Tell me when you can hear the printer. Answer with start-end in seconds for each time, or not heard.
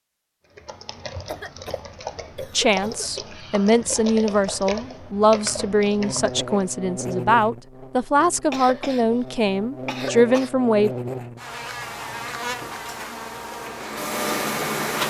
11.8-15.0.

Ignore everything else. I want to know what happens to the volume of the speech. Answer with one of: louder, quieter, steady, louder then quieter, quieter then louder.
steady.